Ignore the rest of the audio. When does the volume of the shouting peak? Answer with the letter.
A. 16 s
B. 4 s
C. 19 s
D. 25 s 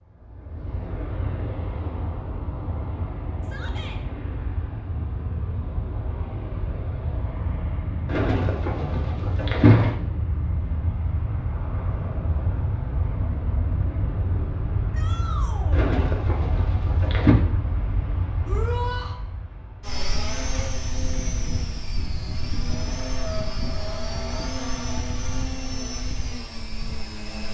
C.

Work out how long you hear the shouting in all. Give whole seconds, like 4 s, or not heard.
2 s.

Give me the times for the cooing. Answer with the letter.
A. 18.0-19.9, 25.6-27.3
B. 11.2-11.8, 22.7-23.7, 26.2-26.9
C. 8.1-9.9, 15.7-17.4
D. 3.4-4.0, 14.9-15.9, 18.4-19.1
C.